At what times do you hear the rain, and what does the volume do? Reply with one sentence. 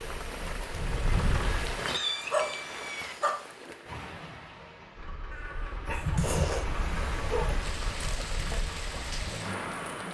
The rain can be heard from 0.0 to 10.0 s, getting quieter then louder.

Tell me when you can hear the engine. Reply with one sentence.
The engine can be heard from 0.0 to 1.8 s and from 5.0 to 9.8 s.